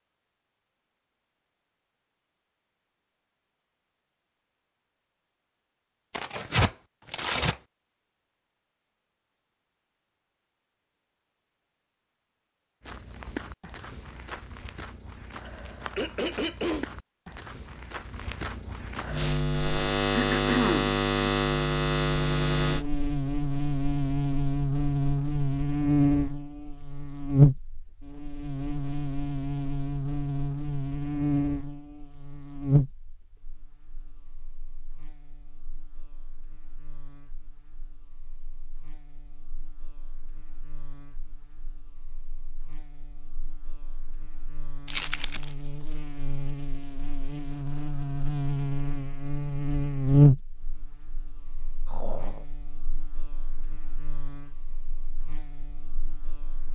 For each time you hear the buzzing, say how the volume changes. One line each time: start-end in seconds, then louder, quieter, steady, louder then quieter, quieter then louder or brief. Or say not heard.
19.1-56.7 quieter then louder.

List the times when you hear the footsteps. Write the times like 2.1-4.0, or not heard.
12.8-19.4.